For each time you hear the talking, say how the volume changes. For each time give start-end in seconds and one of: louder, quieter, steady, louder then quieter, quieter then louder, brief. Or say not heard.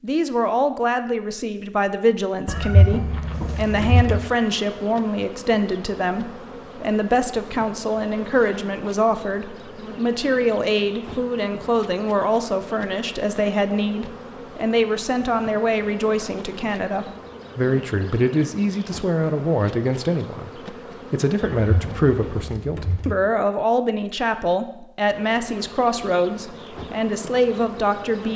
0.0-28.3 steady.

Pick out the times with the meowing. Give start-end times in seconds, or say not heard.
2.5-4.2, 21.6-23.1.